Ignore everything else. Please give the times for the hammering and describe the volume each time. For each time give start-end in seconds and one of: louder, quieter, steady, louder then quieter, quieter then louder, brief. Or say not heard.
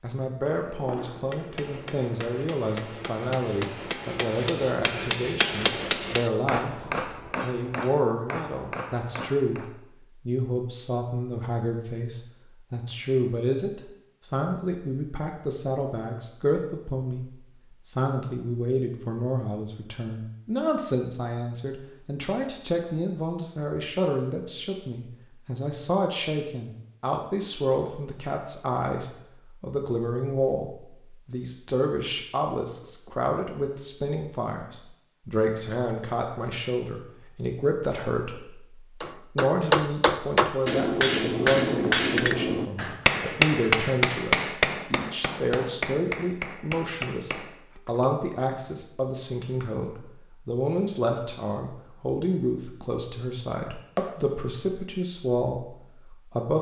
0.7-9.7 louder then quieter
39.0-48.1 quieter.